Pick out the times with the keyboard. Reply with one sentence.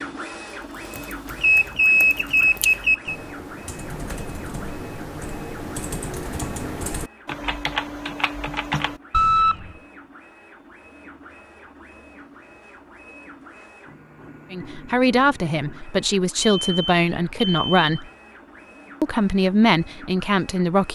You can hear the keyboard from 0.6 to 9.6 s.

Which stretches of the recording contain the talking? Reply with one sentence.
You can hear the talking from 14.5 to 18.1 s and from 19.0 to 20.9 s.